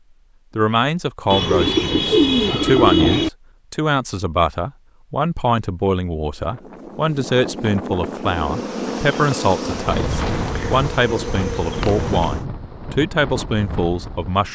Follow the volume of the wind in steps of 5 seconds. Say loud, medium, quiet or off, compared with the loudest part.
off, loud, loud.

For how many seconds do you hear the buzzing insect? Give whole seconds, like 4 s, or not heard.
4 s.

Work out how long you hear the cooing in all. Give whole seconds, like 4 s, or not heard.
5 s.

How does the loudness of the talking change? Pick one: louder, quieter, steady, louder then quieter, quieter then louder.
steady.